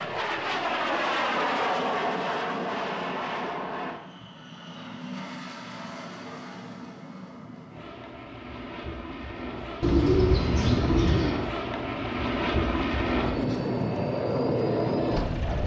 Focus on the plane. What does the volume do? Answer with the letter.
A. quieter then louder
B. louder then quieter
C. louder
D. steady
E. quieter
A.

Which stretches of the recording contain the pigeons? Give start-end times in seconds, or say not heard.
9.8-11.3.